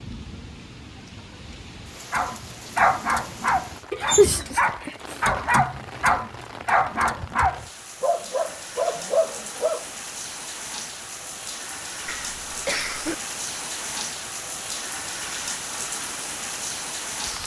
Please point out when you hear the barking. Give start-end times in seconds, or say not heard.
2.1-9.9.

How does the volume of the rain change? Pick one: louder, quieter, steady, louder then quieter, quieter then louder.
louder.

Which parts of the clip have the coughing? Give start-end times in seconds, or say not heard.
12.1-13.2.